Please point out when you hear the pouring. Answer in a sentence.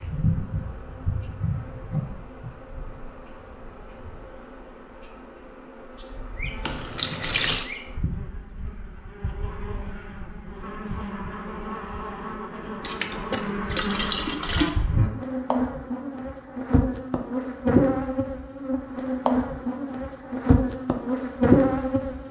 You can hear the pouring from 6.6 to 7.7 s and from 12.8 to 14.7 s.